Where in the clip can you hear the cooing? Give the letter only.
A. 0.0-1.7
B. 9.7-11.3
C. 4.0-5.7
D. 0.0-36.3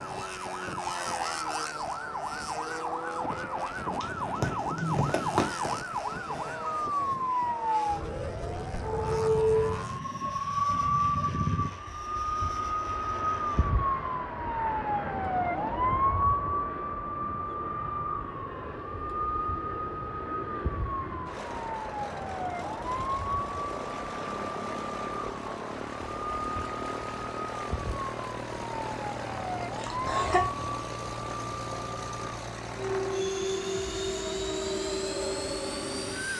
C.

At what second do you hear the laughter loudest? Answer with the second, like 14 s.
30 s.